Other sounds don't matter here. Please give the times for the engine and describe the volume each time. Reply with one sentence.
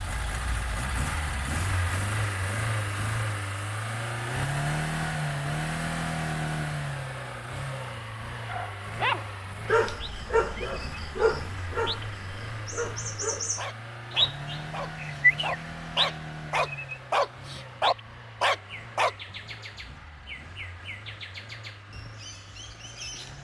You can hear the engine from 0.0 to 23.3 s, getting quieter.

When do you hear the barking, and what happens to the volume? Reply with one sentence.
You can hear the barking from 8.4 to 19.1 s, getting quieter then louder.